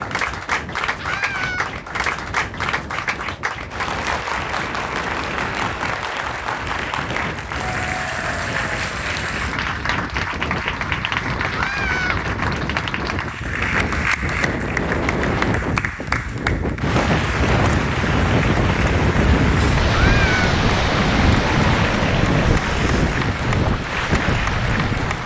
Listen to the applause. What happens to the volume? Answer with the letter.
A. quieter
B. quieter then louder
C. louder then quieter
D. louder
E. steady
E.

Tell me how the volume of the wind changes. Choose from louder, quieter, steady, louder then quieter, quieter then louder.
louder.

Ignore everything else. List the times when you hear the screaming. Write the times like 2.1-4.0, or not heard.
0.9-1.7, 11.5-12.2, 19.9-20.5.